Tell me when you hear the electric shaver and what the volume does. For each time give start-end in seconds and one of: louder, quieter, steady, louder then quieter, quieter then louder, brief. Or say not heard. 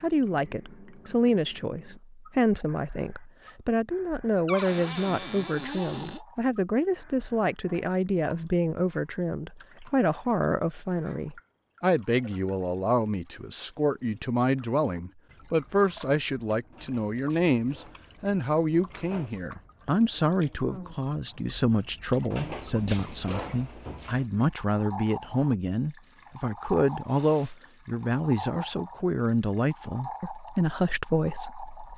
not heard.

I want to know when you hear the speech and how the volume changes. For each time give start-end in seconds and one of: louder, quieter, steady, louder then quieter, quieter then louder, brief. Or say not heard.
0.0-31.9 steady.